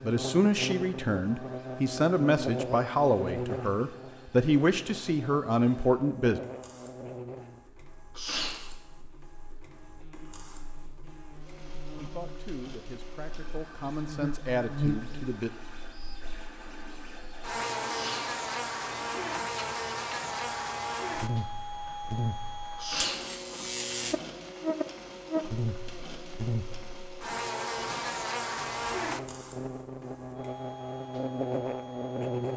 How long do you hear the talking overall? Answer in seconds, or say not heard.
10 s.